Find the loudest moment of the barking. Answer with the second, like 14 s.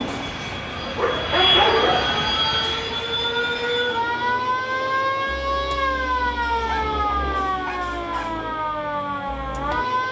2 s.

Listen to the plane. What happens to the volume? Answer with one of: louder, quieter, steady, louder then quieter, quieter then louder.
louder then quieter.